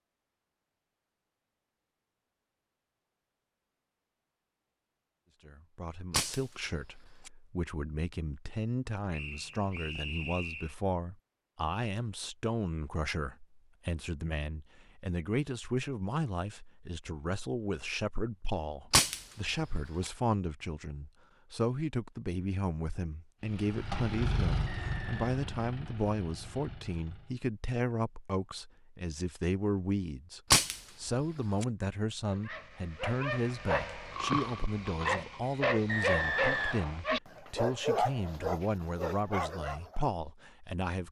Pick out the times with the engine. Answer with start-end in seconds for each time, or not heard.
23.4-27.4.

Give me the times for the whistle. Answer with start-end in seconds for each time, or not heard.
9.1-10.8, 24.8-25.2, 35.9-37.0.